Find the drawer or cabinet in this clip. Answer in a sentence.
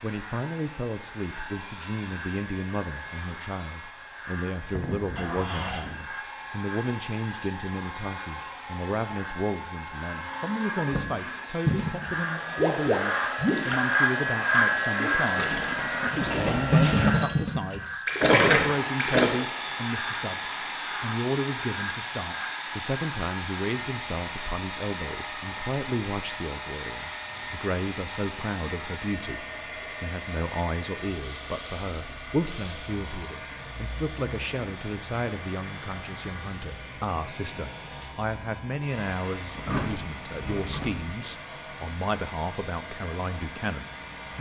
The drawer or cabinet can be heard from 5.2 to 5.8 s, from 16.2 to 17.1 s and from 39.5 to 41.1 s.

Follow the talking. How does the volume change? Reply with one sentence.
The loudness of the talking stays about the same.